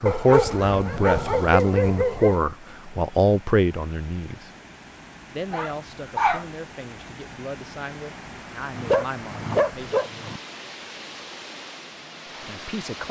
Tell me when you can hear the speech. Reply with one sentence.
You can hear the speech from 0.0 to 4.5 s, from 5.3 to 10.0 s and from 12.2 to 13.0 s.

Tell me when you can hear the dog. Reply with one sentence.
The dog can be heard from 0.1 to 2.4 s, from 5.5 to 6.5 s and from 8.7 to 10.4 s.